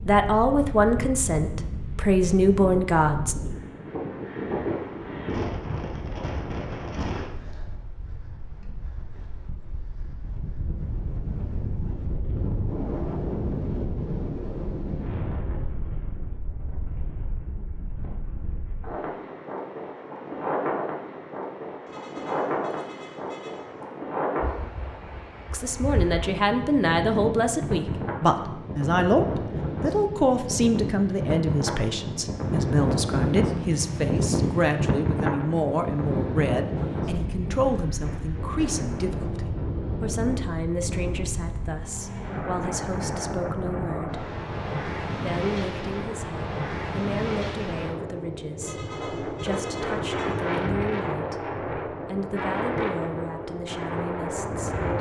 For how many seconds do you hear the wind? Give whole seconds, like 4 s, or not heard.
55 s.